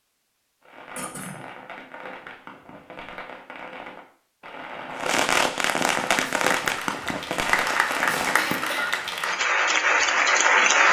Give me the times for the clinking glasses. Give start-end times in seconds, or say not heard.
not heard.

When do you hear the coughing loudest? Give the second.
9 s.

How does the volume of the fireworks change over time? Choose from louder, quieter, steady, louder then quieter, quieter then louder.
louder then quieter.